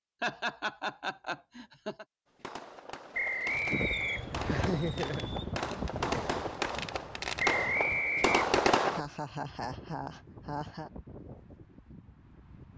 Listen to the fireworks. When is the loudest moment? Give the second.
9 s.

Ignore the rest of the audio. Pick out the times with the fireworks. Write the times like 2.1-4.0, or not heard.
2.3-9.0.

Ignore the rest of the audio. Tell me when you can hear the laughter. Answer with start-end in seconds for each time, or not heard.
0.2-2.0, 4.5-5.3, 8.8-10.9.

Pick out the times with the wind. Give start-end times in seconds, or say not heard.
3.5-12.7.